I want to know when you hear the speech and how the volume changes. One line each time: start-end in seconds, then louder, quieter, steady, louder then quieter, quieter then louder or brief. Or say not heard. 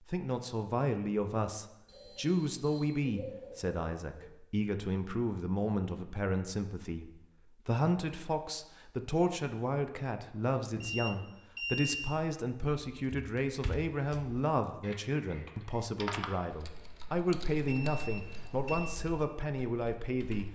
0.1-20.5 steady.